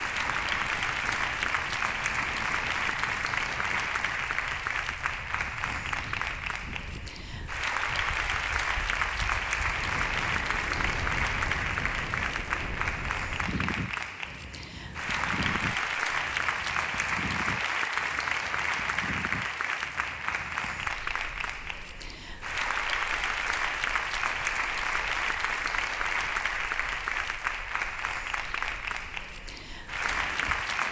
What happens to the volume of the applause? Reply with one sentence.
The loudness of the applause stays about the same.